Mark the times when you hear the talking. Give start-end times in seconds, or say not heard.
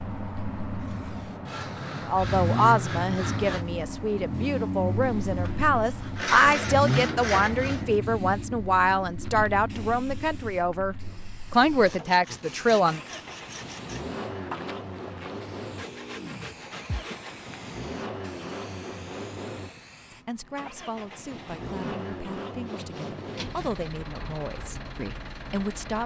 1.9-13.0, 20.1-26.0.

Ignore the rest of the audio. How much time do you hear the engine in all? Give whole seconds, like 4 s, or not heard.
26 s.